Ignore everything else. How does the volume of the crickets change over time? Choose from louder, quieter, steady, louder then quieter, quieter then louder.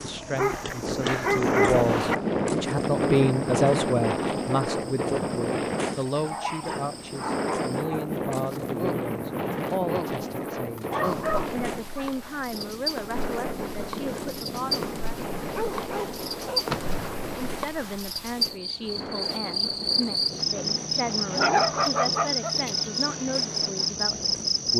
louder.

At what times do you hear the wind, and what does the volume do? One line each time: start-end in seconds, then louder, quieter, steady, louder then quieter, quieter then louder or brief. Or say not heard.
0.0-24.7 quieter.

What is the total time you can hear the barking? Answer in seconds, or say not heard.
8 s.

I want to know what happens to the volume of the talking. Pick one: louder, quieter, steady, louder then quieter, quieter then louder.
quieter.